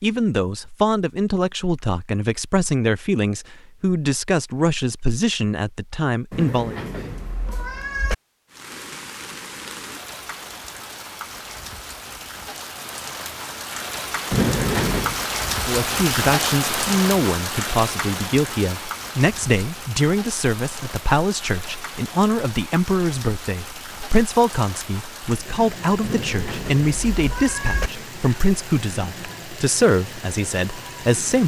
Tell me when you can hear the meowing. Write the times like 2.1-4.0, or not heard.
6.3-8.2, 14.3-15.2, 26.0-27.9.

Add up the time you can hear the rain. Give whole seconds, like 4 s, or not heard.
23 s.